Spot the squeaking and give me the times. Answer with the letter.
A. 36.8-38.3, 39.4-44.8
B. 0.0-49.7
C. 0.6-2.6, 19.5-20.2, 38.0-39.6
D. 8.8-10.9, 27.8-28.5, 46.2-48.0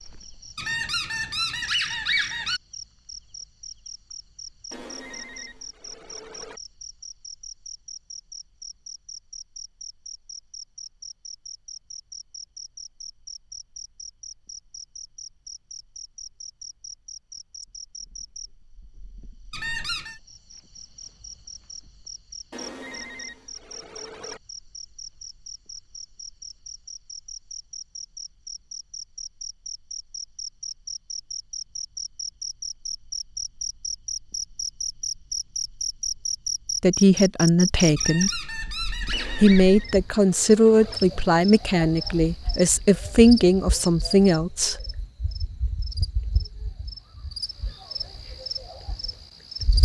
C.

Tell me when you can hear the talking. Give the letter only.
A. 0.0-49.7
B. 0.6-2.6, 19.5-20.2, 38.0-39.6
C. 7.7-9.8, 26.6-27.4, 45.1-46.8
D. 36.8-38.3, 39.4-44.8
D.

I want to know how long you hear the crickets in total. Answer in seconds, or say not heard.
50 s.